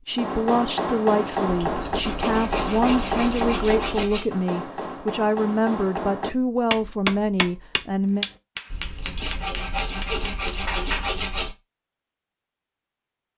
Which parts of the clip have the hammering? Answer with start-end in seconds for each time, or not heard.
0.1-11.1.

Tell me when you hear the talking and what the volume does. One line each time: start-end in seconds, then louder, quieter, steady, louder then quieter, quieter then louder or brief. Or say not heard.
0.1-8.2 steady.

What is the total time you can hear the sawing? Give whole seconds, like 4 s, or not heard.
6 s.